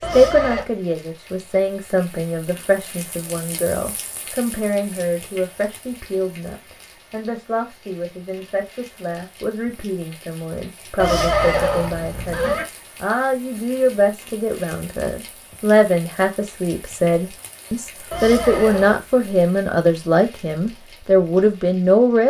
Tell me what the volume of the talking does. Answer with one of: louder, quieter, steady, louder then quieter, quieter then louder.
louder.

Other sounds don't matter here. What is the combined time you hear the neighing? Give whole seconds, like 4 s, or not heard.
3 s.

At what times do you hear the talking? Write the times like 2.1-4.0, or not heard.
0.0-22.2.